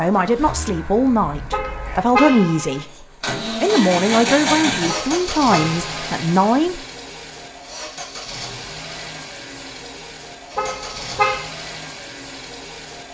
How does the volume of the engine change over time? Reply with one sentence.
The volume of the engine goes up, then down.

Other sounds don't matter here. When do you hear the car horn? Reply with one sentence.
You can hear the car horn from 1.5 to 2.9 s, from 4.8 to 6.1 s and from 10.6 to 11.4 s.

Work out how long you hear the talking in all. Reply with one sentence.
The talking can be heard for 6 seconds in total.